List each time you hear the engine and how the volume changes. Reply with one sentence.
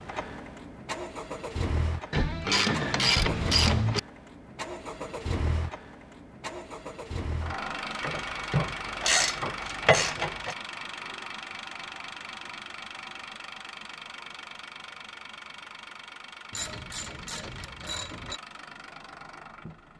You can hear the engine from 0.0 to 19.9 s, getting quieter.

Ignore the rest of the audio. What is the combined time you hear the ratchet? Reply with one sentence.
You can hear the ratchet for 6 seconds altogether.